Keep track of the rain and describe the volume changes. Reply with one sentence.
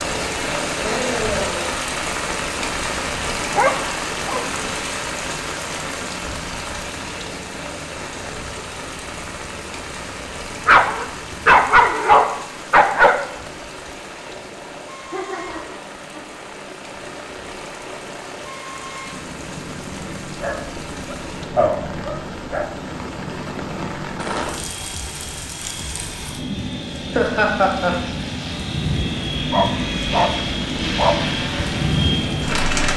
The volume of the rain goes down, then up.